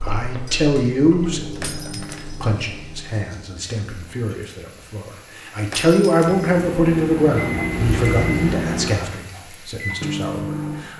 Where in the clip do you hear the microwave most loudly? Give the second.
8 s.